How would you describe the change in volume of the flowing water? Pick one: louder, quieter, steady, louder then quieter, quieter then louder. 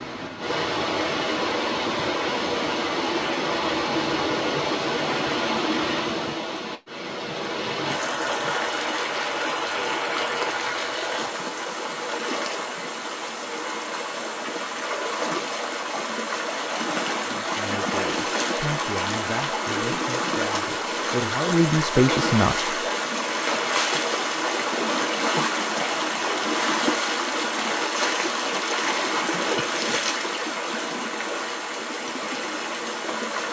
steady.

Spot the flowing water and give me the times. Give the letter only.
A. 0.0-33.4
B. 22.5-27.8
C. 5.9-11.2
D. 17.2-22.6
A.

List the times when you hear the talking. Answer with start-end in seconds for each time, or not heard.
17.2-22.6.